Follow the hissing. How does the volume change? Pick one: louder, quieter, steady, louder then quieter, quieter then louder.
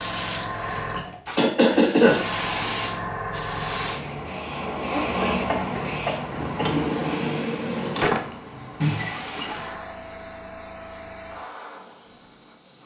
quieter.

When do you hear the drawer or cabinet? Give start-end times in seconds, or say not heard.
6.6-8.2.